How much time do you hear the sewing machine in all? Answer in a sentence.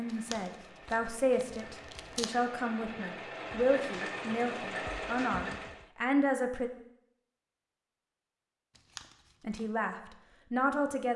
The sewing machine can be heard for 6 seconds in total.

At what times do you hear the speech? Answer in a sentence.
The speech can be heard from 0.0 to 6.7 s and from 9.4 to 11.1 s.